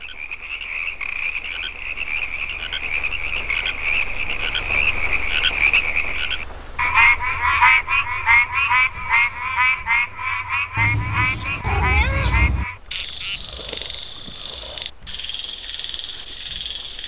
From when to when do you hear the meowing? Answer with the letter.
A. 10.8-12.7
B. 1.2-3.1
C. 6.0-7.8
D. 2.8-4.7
A.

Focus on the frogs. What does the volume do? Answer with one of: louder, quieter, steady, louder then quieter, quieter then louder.
louder then quieter.